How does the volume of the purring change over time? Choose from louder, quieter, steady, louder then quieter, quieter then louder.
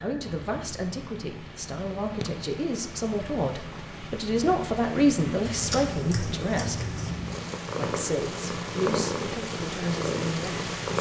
louder.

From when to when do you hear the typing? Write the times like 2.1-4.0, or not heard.
5.5-7.1.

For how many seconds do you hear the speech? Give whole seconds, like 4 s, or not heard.
10 s.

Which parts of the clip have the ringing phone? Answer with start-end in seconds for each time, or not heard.
not heard.